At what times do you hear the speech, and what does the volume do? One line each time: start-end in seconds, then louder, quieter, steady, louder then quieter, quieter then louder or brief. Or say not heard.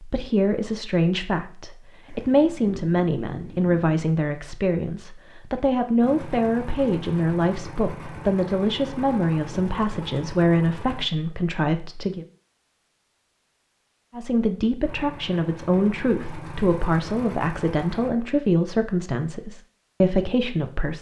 0.0-12.2 steady
14.2-20.9 steady.